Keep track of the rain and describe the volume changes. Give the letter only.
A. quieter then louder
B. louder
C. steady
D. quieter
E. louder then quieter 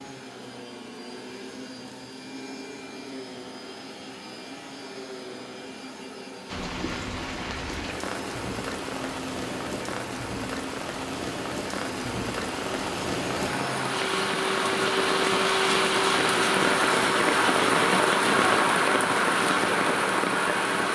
B.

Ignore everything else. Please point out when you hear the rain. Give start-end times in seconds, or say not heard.
6.5-20.9.